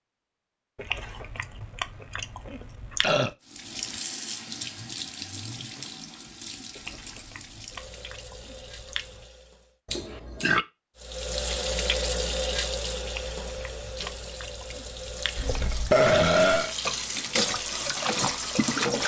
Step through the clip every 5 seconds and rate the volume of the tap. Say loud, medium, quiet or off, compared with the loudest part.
medium, quiet, loud, loud.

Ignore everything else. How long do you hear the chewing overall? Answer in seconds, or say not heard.
7 s.